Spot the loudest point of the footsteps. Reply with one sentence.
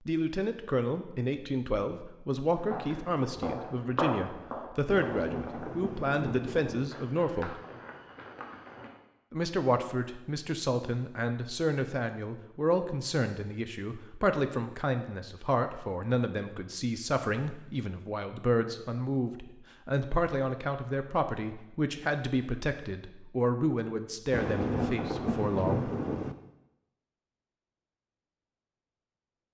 The loudest moment of the footsteps is at 4 seconds.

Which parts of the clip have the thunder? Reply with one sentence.
You can hear the thunder from 4.8 to 6.9 s and from 24.3 to 26.4 s.